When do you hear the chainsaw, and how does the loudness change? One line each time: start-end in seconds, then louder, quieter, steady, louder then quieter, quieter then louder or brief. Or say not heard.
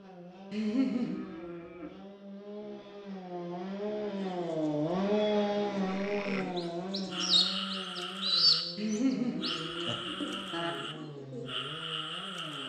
0.0-12.6 louder then quieter.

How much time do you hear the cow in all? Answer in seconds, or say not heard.
3 s.